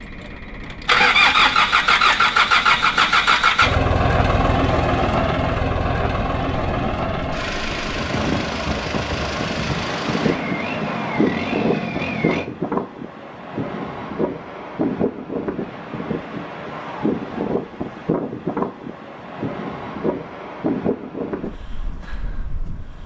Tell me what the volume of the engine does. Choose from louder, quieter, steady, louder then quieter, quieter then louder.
quieter.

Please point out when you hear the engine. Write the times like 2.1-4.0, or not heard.
0.0-12.5.